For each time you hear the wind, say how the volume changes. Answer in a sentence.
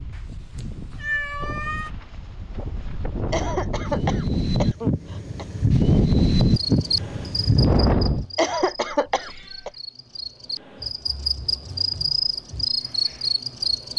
The wind can be heard from 0.0 to 8.2 s, getting louder.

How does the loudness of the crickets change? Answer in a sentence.
The volume of the crickets goes down, then up.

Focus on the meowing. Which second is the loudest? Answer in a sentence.
The volume of the meowing peaks at 1 second.